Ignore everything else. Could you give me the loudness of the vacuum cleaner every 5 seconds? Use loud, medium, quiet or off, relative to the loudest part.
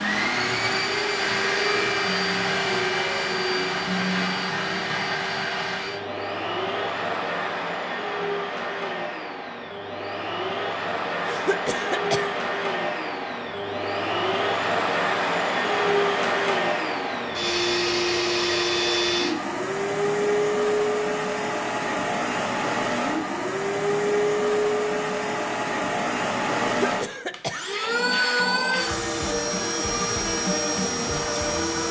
loud, medium, loud, loud, loud, loud, loud.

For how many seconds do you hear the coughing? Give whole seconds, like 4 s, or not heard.
2 s.